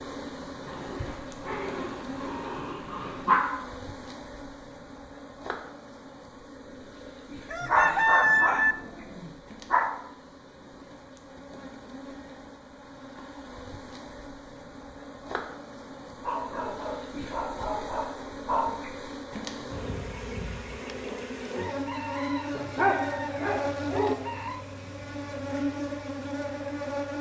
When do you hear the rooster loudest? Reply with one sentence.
The volume of the rooster peaks at 8 seconds.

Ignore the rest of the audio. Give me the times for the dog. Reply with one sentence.
You can hear the dog from 0.7 to 3.6 s, from 7.6 to 9.9 s, from 16.2 to 18.8 s and from 22.5 to 24.1 s.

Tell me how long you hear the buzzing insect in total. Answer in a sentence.
You can hear the buzzing insect for 27 seconds altogether.